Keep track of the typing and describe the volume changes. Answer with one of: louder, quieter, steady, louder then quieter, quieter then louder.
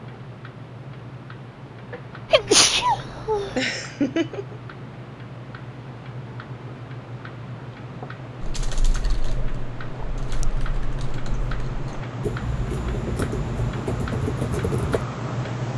louder.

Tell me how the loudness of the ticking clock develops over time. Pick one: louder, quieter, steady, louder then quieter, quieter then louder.
louder.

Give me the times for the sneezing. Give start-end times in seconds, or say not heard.
2.3-3.6.